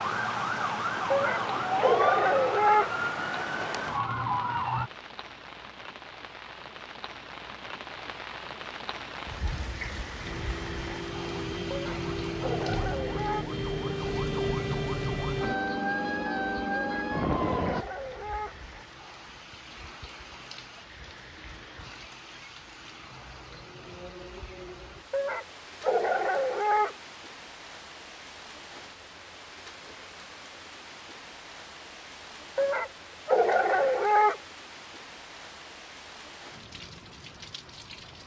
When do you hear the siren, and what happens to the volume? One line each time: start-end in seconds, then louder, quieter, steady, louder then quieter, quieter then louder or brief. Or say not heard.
0.0-4.9 steady
10.2-17.9 louder.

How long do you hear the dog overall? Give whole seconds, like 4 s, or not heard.
9 s.